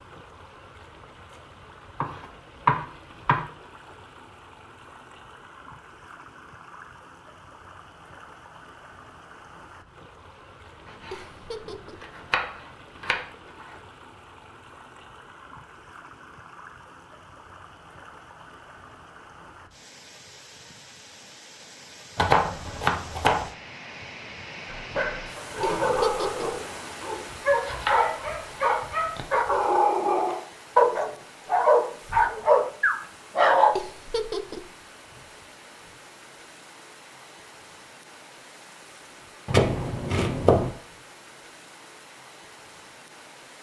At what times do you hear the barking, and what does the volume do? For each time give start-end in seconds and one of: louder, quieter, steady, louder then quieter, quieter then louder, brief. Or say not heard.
24.6-33.8 louder.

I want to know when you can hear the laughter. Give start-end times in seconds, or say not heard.
11.1-12.1, 25.6-26.5, 33.8-34.6.